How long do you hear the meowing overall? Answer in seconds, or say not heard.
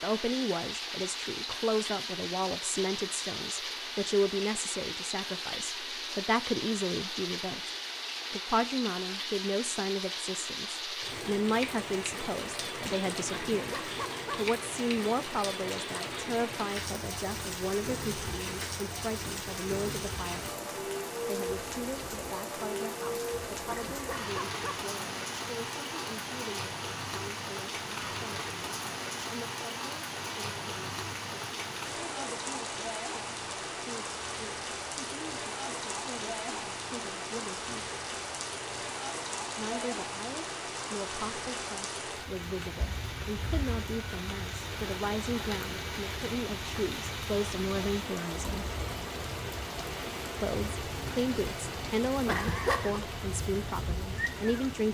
3 s.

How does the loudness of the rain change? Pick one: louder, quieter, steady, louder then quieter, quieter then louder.
steady.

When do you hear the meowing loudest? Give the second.
53 s.